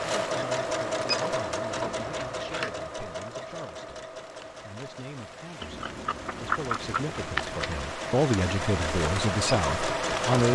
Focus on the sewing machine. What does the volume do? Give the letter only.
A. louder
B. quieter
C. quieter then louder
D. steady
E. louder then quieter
C.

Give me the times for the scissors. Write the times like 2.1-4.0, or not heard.
1.9-2.8, 5.6-7.7.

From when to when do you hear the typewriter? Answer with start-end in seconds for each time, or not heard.
not heard.